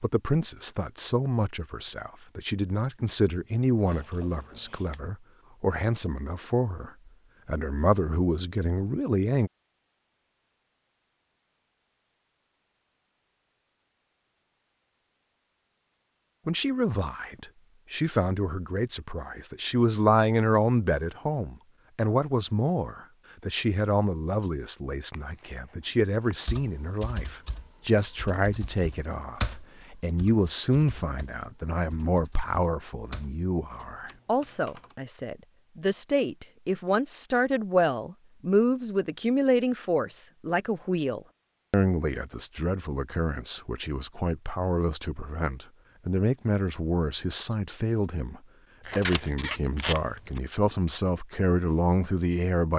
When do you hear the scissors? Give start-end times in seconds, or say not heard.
3.9-5.0, 25.1-26.4, 48.9-50.4.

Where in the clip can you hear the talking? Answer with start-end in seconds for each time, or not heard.
0.0-9.5, 16.4-52.7.